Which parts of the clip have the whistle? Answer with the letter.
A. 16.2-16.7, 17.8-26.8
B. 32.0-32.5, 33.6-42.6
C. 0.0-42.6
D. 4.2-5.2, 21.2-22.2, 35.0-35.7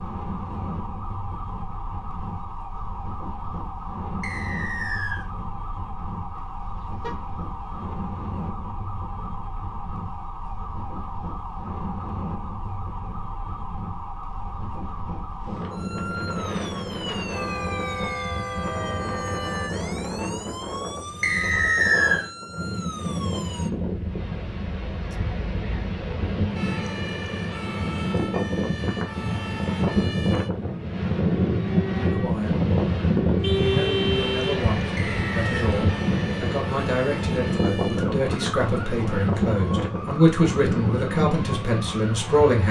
D.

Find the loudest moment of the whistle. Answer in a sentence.
The loudest moment of the whistle is at 22 seconds.